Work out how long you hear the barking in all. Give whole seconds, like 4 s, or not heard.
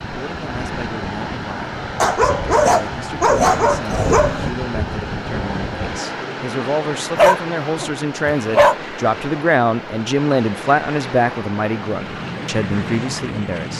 4 s.